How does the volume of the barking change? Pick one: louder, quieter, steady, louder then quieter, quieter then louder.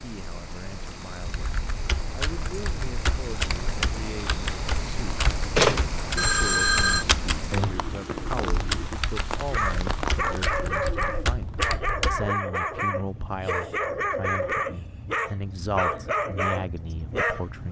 steady.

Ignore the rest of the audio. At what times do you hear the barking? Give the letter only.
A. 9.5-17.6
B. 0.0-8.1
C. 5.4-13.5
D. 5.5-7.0
A.